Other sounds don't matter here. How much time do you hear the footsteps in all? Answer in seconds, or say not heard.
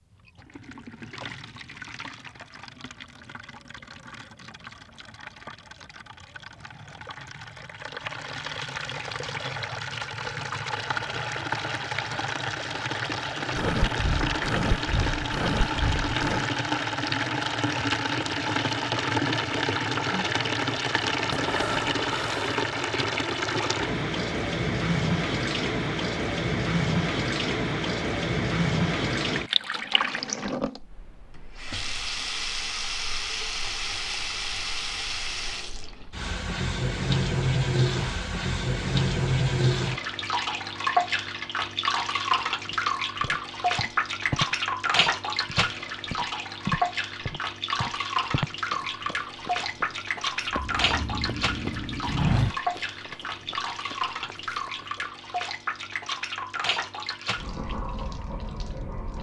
12 s.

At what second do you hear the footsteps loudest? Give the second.
52 s.